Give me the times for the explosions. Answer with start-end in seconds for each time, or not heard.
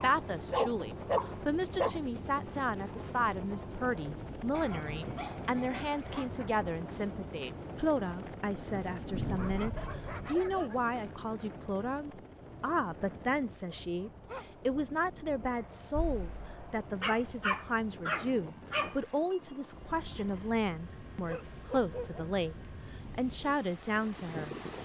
9.1-10.2, 15.9-16.8.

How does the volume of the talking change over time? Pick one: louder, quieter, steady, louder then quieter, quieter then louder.
steady.